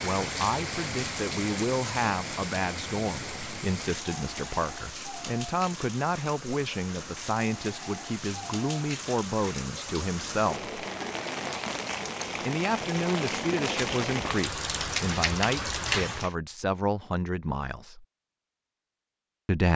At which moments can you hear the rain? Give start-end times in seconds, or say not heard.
0.0-16.4.